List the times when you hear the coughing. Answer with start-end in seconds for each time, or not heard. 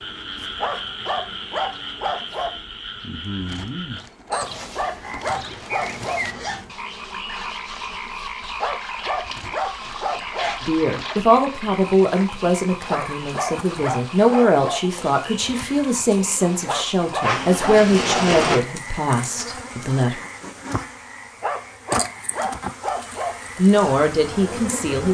not heard.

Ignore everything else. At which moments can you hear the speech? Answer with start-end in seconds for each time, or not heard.
10.6-20.2, 23.6-25.0.